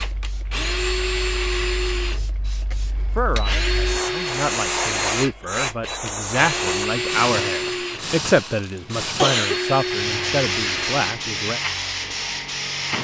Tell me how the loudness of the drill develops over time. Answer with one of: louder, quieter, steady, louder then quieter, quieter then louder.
steady.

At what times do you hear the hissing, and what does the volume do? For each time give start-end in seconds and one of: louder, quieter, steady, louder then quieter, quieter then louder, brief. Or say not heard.
0.0-12.9 louder.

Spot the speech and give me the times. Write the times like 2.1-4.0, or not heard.
3.1-11.6.